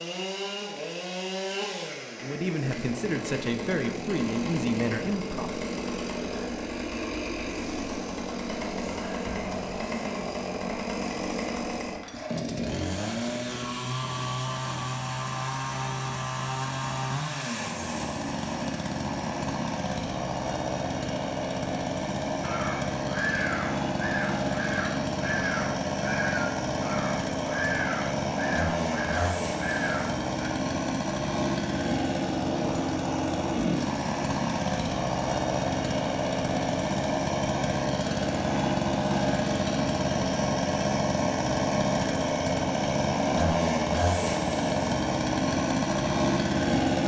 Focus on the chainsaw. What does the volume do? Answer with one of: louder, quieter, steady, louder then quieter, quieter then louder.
louder.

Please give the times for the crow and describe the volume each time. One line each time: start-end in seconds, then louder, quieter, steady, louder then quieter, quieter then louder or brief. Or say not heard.
22.4-30.2 steady.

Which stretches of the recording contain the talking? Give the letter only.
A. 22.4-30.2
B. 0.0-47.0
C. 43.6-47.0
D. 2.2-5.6
D.